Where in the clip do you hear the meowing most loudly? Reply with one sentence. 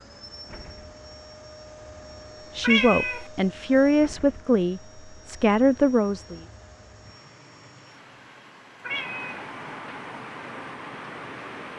The loudest moment of the meowing is at 3 seconds.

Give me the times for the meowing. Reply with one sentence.
You can hear the meowing from 2.6 to 3.2 s and from 8.8 to 9.4 s.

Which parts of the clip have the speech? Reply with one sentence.
The speech can be heard from 2.5 to 6.4 s.